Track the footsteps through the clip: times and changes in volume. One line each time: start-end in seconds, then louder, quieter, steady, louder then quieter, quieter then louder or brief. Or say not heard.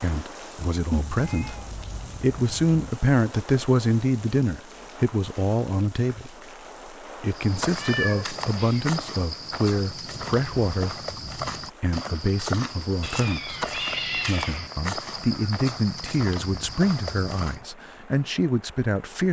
7.3-17.6 steady.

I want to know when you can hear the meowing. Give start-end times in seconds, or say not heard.
0.9-2.8, 7.8-8.9, 13.0-14.7.